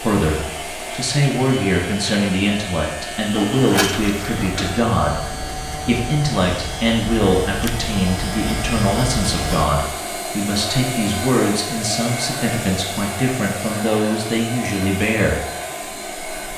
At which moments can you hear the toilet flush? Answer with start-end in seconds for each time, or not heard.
3.3-4.8.